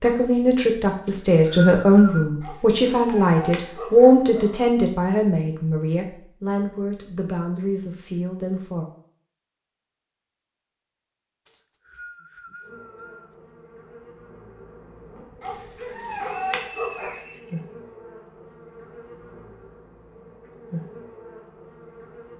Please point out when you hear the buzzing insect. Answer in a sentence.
You can hear the buzzing insect from 12.6 to 22.3 s.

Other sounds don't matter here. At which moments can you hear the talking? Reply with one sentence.
You can hear the talking from 0.0 to 8.8 s.